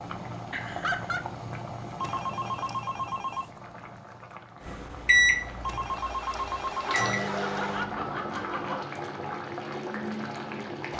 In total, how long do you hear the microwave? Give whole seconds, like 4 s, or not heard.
3 s.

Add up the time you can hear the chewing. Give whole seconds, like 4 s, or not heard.
not heard.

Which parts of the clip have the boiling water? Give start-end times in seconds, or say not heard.
0.0-10.9.